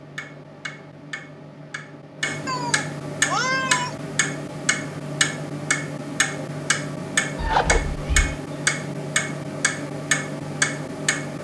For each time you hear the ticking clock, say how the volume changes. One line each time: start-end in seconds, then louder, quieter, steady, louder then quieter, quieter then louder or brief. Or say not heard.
0.0-11.4 louder.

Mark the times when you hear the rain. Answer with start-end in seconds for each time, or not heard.
not heard.